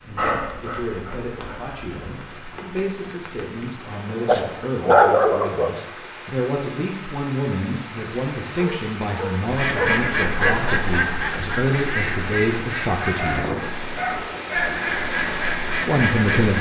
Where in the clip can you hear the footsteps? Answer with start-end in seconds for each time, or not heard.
not heard.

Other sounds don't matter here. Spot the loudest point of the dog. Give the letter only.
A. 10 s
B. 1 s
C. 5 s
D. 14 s
C.